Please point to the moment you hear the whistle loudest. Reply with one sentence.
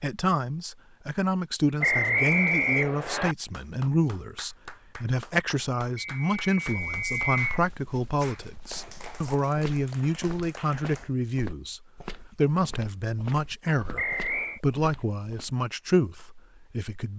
The loudest moment of the whistle is at 2 seconds.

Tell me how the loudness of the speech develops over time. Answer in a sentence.
The loudness of the speech stays about the same.